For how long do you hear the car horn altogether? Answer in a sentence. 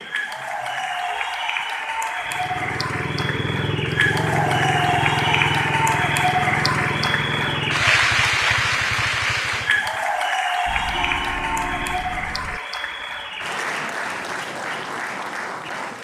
You can hear the car horn for 3 seconds altogether.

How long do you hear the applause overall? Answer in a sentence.
The applause can be heard for 16 seconds in total.